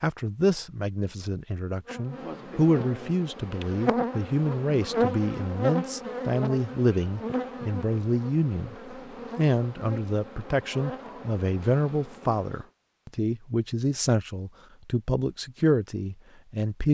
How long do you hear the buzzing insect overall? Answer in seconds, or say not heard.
11 s.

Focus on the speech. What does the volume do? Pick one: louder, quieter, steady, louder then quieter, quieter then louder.
steady.